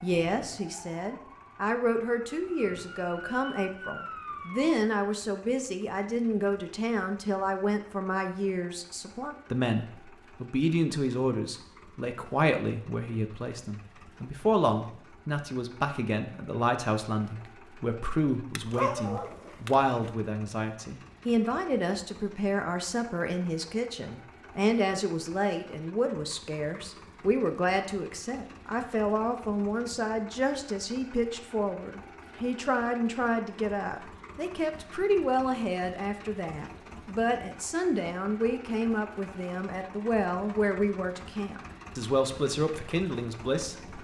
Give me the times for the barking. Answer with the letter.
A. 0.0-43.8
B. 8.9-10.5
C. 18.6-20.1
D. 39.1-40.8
C.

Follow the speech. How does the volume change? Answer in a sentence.
The volume of the speech stays about the same.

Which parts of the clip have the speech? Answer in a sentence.
You can hear the speech from 0.0 to 43.8 s.